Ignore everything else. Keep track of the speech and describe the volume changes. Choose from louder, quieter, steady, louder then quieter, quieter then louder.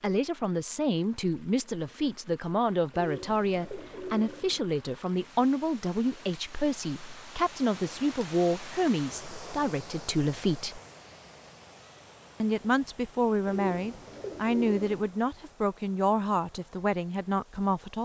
steady.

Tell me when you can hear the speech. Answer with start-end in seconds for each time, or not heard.
0.0-10.8, 12.4-18.0.